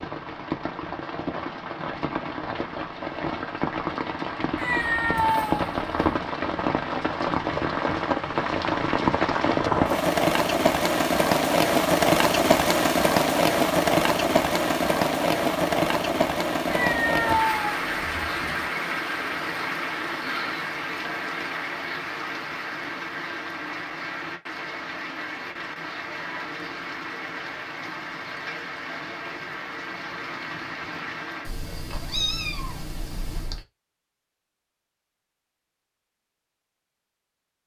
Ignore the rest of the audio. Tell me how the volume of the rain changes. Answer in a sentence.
The volume of the rain goes up, then down.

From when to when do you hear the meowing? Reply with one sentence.
The meowing can be heard from 4.5 to 6.1 s, from 16.6 to 18.7 s and from 31.4 to 33.6 s.